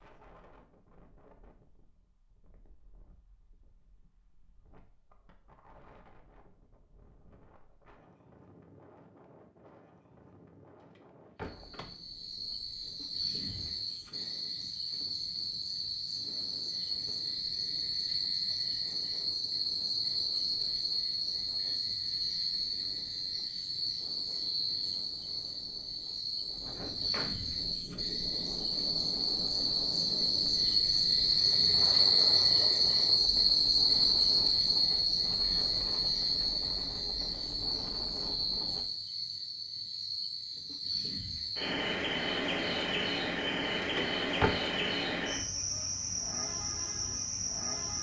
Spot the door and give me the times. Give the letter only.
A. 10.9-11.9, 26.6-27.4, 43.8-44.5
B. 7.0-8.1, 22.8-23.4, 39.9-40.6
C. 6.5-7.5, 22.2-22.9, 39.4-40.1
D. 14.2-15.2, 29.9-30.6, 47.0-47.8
A.